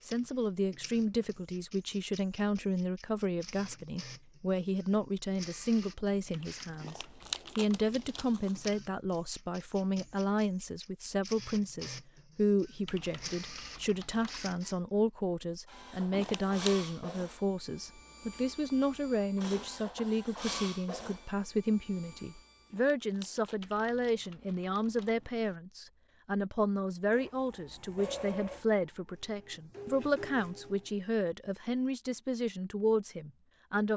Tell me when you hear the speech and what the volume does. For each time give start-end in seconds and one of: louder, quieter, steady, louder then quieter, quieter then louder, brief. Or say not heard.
0.1-33.9 steady.